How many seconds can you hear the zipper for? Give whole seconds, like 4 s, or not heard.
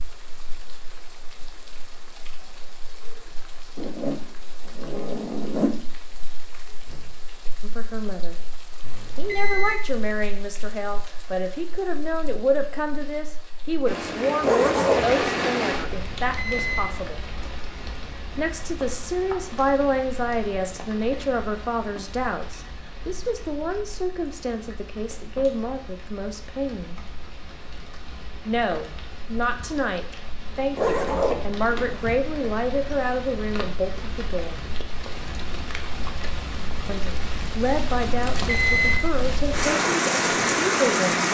4 s.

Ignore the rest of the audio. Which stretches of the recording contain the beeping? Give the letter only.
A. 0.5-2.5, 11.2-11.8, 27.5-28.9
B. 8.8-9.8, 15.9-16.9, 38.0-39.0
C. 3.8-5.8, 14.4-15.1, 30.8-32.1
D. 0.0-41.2
B.